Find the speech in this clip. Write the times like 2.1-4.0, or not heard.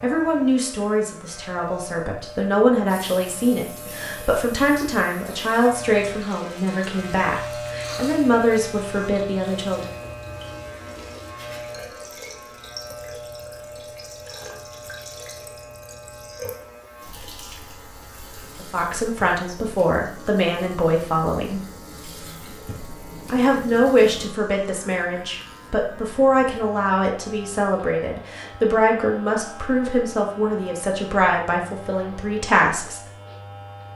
0.0-9.9, 18.6-21.6, 23.2-33.0.